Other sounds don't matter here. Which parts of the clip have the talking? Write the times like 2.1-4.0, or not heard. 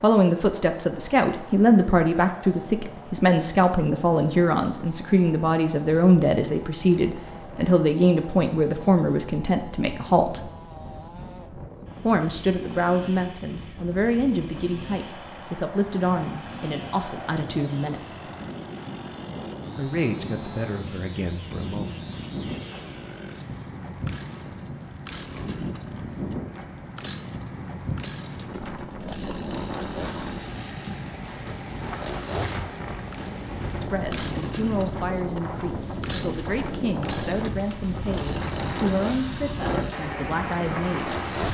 0.0-10.5, 12.0-18.2, 19.8-22.0, 33.8-41.2.